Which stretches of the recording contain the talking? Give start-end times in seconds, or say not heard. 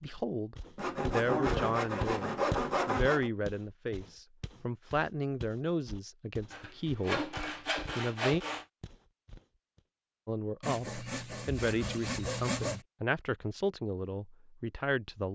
0.0-8.4, 10.2-15.3.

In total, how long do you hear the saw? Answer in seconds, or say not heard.
7 s.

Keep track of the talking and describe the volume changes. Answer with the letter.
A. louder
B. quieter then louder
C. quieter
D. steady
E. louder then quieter
D.